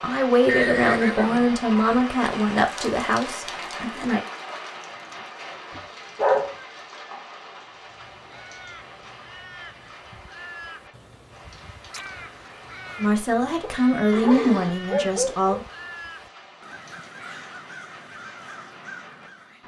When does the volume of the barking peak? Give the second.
6 s.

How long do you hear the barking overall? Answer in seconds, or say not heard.
3 s.